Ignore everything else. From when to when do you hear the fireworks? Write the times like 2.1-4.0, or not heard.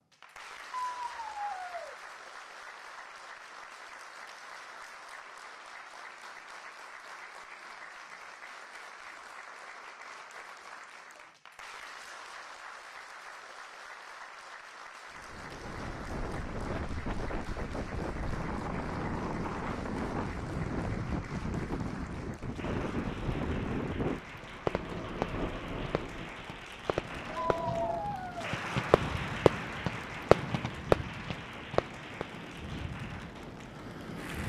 24.1-32.2.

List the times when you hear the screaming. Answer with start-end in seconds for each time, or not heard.
0.7-1.9, 27.5-28.6.